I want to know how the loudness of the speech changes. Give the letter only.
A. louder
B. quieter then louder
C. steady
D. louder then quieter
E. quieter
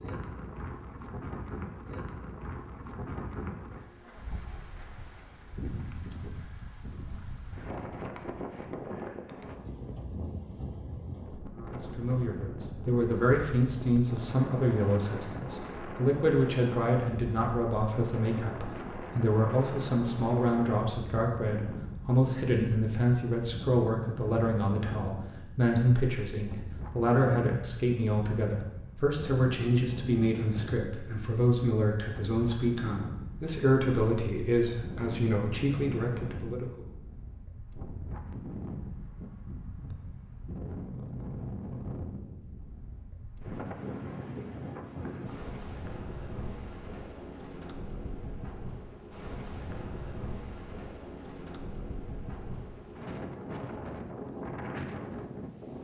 C.